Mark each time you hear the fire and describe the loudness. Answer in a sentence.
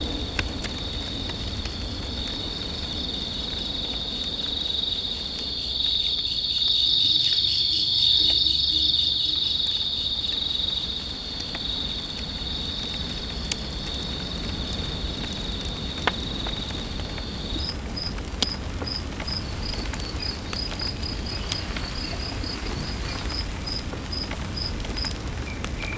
The fire can be heard from 0.0 to 25.9 s, getting quieter then louder.